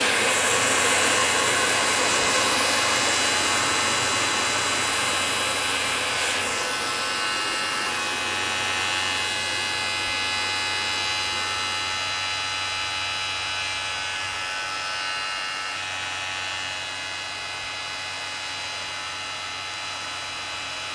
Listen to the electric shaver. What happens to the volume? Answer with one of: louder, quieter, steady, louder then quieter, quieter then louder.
quieter.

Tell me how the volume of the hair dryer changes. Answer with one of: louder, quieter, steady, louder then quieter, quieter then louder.
quieter.